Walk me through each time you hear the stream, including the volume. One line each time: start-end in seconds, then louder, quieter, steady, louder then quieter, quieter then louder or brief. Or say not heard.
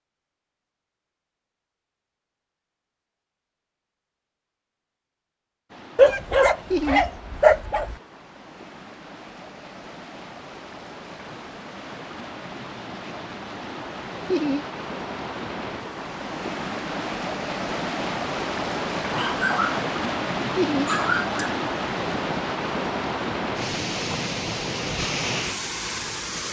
5.7-26.4 louder.